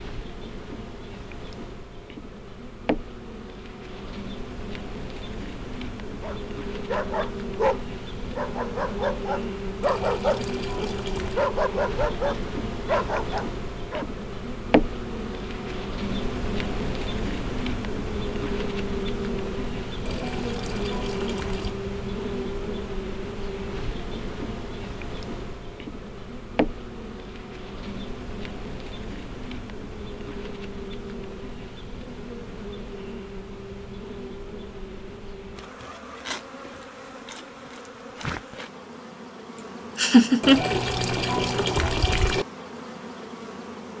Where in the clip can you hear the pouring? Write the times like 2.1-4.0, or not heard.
9.8-11.5, 20.1-21.8, 40.4-42.5.